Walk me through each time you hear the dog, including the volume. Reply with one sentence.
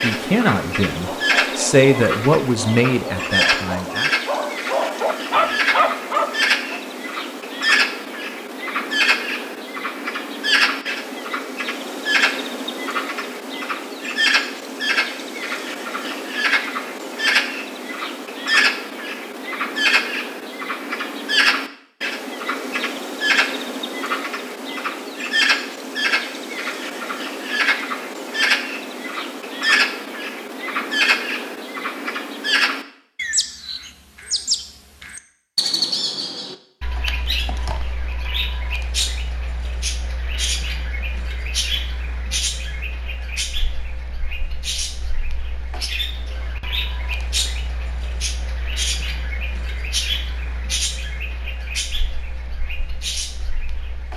You can hear the dog from 0.9 to 6.8 s, getting louder.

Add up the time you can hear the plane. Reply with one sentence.
The plane can't be heard in this clip.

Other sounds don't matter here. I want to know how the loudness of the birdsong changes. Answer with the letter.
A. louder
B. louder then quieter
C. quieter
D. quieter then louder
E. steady
C.